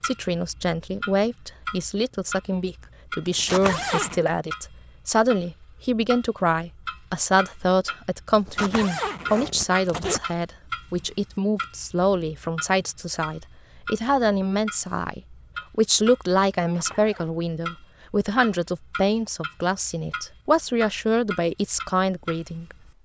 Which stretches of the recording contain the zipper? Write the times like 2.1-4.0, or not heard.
3.2-4.2, 8.3-10.2, 16.6-17.3.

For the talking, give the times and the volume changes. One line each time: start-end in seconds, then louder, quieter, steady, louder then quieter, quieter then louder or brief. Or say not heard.
0.0-22.8 steady.